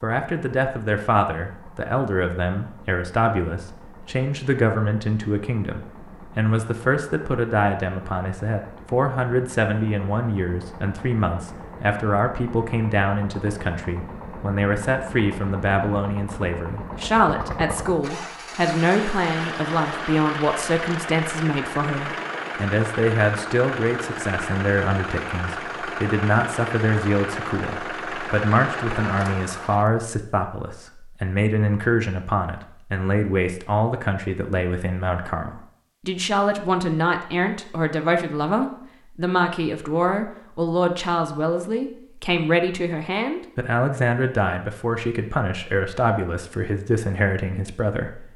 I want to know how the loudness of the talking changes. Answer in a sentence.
The volume of the talking stays about the same.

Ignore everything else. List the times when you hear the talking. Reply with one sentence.
The talking can be heard from 0.0 to 48.3 s.